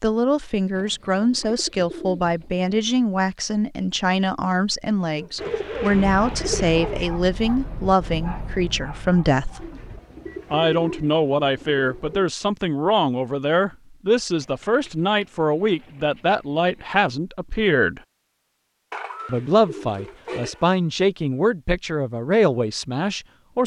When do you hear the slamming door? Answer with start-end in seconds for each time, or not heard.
not heard.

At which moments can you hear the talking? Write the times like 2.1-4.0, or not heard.
0.0-9.7, 10.5-18.0, 19.2-23.6.